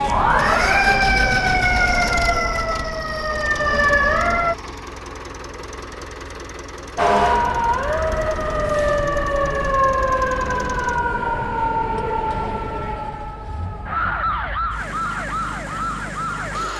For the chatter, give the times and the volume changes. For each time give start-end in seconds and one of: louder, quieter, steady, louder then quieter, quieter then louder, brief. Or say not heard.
not heard.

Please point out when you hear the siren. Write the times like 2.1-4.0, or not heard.
0.0-4.5, 7.0-16.7.